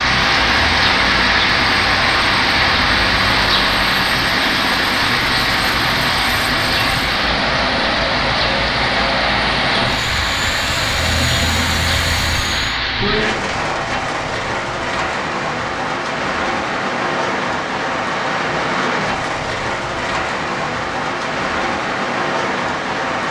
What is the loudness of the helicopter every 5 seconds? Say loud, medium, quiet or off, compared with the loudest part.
loud, loud, loud, off, off.